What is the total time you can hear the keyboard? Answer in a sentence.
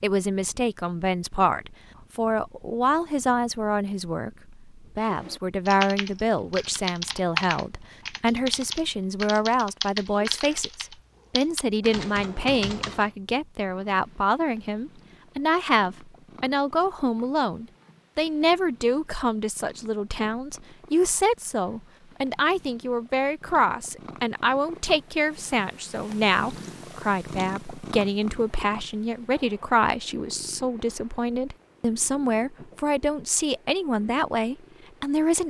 The keyboard can be heard for 8 seconds in total.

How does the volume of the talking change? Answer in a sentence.
The loudness of the talking stays about the same.